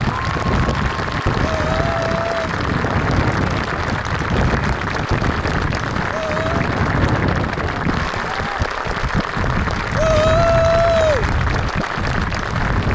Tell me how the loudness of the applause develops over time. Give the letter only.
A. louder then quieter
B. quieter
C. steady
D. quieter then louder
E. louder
C.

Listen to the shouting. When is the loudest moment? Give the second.
11 s.